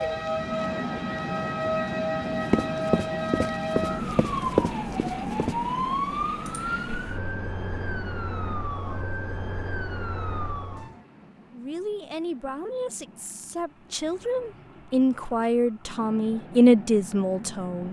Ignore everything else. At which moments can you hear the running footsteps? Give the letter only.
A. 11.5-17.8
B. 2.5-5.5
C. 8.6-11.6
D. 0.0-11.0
B.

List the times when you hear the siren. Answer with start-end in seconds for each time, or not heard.
0.0-11.0.